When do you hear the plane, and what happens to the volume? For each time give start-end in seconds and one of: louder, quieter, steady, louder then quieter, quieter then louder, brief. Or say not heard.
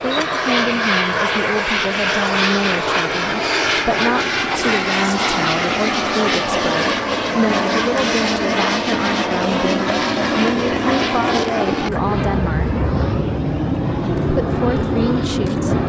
0.0-15.8 steady.